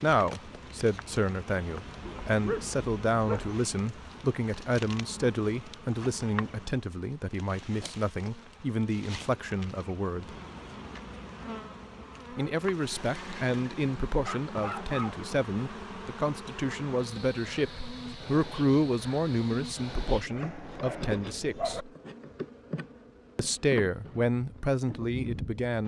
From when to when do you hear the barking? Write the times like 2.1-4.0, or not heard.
2.0-3.5, 14.2-15.2, 20.3-21.9.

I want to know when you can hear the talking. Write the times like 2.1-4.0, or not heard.
0.0-10.3, 12.3-21.9, 23.4-25.8.